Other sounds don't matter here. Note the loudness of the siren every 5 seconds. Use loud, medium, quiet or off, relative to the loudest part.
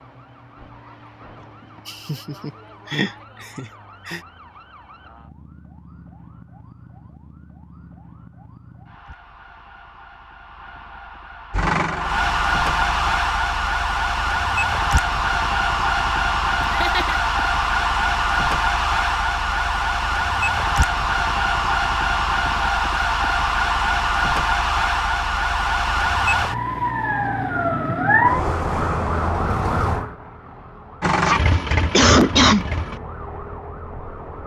quiet, quiet, loud, loud, loud, loud, quiet.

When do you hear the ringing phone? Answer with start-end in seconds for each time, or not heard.
not heard.